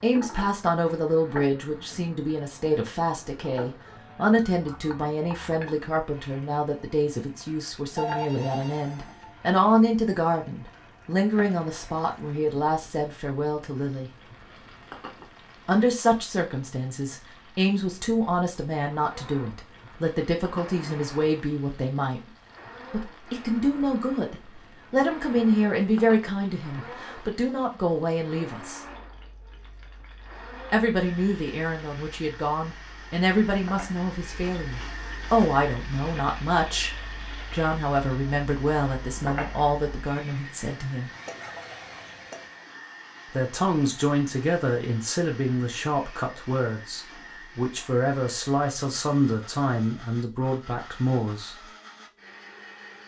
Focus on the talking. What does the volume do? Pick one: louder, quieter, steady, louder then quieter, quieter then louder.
steady.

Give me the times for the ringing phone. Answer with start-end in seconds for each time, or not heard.
8.0-9.3.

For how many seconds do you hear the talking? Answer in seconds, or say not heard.
45 s.